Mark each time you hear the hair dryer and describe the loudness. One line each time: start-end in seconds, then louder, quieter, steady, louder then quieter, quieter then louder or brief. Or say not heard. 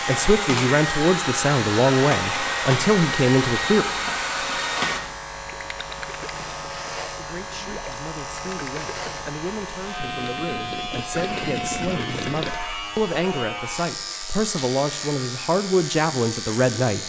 0.0-5.0 steady.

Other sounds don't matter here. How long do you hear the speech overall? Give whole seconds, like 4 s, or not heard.
14 s.